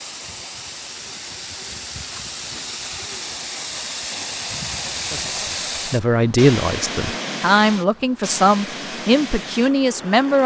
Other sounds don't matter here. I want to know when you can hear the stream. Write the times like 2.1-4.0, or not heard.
0.0-10.4.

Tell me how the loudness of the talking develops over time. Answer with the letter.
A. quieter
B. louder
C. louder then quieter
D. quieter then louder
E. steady
E.